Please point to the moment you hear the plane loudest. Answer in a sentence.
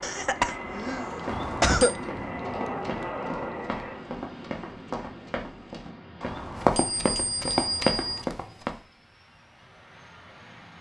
The volume of the plane peaks at 3 seconds.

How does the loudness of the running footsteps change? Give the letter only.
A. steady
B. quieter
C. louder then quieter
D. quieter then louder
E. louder
E.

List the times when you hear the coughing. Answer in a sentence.
You can hear the coughing from 0.0 to 1.9 s.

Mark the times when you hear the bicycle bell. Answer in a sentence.
You can hear the bicycle bell from 1.2 to 1.9 s and from 6.2 to 8.2 s.